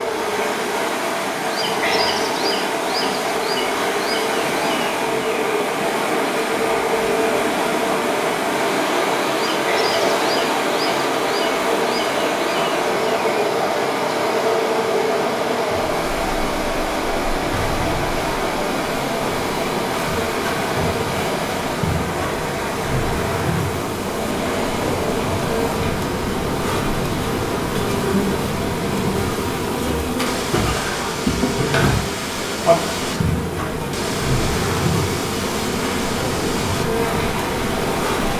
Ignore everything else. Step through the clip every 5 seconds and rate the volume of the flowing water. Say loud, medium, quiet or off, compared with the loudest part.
loud, loud, loud, loud, medium, medium, medium, medium.